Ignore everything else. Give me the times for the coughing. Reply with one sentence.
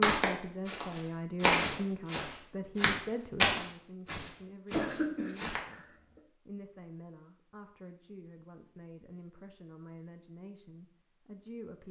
You can hear the coughing from 4.7 to 5.8 s.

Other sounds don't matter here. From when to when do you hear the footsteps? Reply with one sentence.
The footsteps can be heard from 0.0 to 5.6 s.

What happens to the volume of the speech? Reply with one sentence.
The loudness of the speech goes down.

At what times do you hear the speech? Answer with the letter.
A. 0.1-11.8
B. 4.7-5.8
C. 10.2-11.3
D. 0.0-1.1
A.